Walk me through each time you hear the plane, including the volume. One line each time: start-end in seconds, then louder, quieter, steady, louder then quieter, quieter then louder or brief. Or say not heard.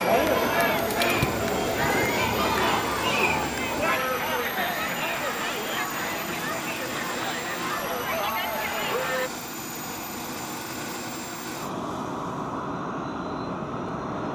0.0-14.3 steady.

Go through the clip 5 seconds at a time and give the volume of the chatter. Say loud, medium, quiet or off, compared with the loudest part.
loud, medium, off.